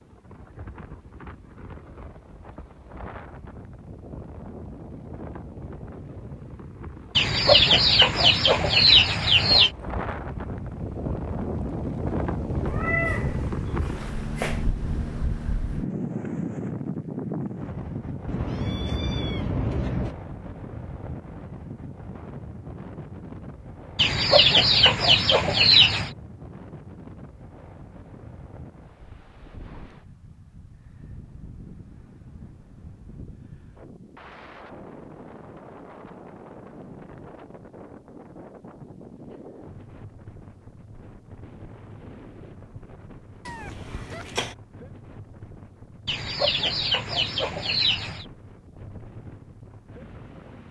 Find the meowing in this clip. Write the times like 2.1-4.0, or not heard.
12.7-14.7, 18.2-20.1, 43.5-44.5.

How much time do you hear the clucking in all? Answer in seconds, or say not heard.
7 s.